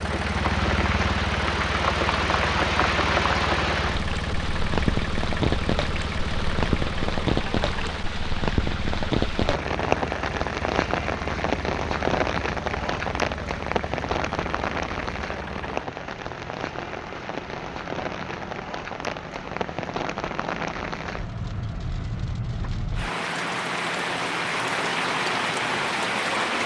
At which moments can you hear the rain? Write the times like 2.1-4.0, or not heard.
0.0-26.6.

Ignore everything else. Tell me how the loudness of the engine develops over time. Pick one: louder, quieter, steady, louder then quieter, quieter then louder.
quieter.